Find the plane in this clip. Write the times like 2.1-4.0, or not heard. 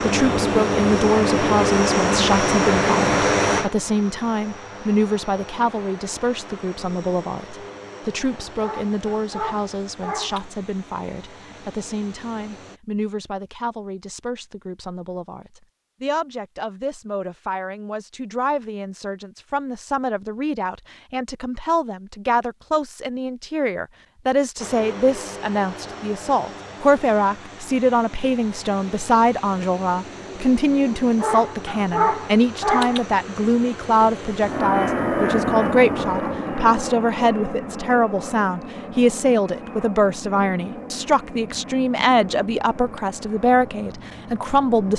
0.0-12.8, 24.6-44.9.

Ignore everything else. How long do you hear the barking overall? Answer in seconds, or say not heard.
4 s.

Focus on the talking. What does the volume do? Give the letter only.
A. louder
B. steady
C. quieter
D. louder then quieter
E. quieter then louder
E.